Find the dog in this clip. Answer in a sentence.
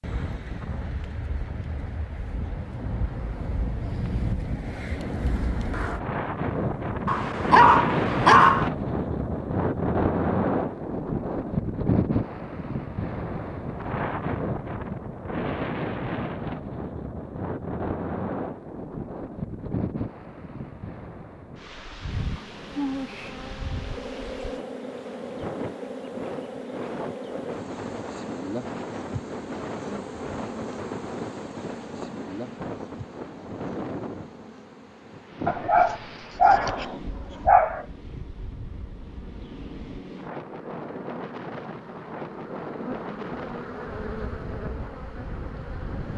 You can hear the dog from 7.0 to 8.7 s and from 35.5 to 37.9 s.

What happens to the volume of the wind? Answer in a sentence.
The loudness of the wind goes down.